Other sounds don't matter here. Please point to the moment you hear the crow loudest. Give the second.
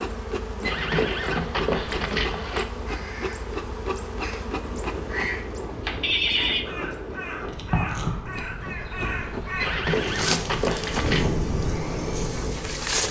8 s.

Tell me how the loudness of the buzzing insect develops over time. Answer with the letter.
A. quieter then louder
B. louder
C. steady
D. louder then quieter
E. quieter
A.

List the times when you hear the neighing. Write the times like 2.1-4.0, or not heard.
0.6-2.6, 6.0-6.7, 9.6-11.3.